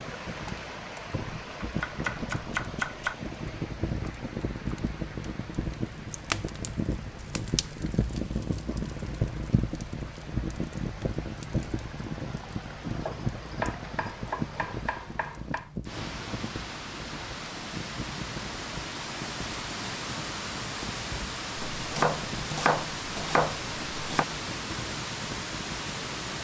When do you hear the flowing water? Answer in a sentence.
You can hear the flowing water from 0.0 to 26.3 s.